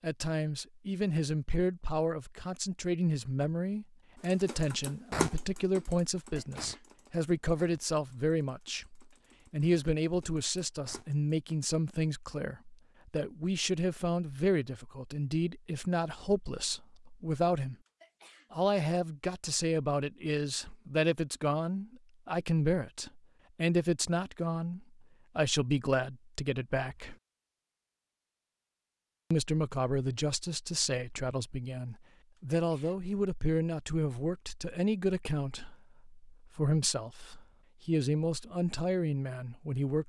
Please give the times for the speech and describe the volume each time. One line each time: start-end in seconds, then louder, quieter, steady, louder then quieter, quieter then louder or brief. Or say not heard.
0.0-17.8 steady
18.5-27.1 steady
29.3-40.0 steady.